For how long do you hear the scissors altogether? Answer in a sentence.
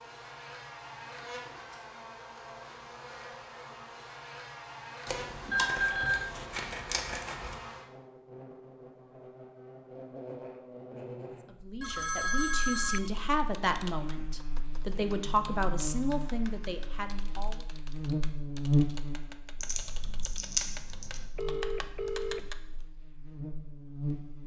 The scissors can be heard for 4 seconds in total.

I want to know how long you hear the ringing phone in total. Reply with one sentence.
The ringing phone can be heard for 3 seconds in total.